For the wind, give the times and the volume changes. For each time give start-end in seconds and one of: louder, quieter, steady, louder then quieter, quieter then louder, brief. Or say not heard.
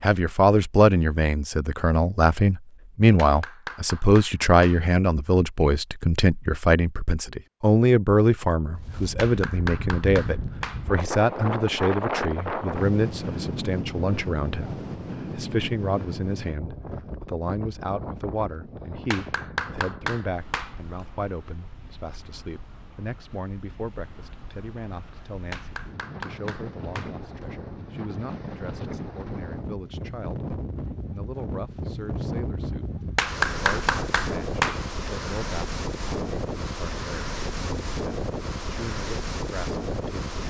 8.8-40.4 quieter then louder.